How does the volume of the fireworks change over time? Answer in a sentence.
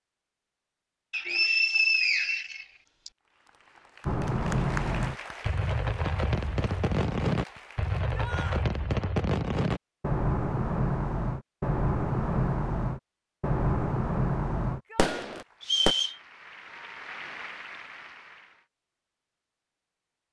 The volume of the fireworks stays about the same.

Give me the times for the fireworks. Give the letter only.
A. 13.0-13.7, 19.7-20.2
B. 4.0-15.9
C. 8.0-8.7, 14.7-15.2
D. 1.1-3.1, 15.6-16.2
B.